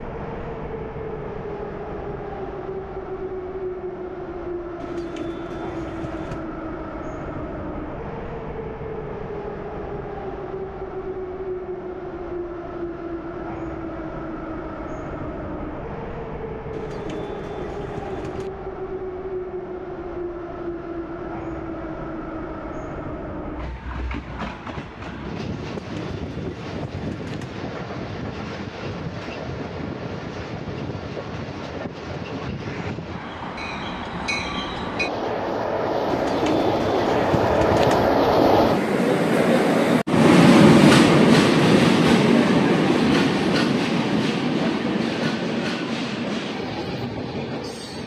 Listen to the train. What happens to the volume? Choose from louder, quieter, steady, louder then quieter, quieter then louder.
louder.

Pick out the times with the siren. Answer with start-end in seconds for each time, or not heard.
not heard.